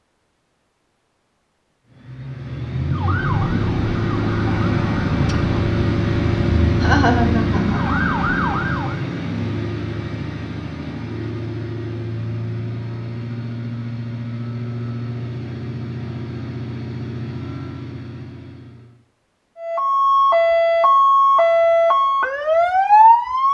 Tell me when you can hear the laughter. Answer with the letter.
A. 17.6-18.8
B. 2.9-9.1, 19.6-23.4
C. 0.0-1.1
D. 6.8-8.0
D.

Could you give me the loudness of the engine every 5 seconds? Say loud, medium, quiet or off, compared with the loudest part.
loud, loud, medium, medium, off.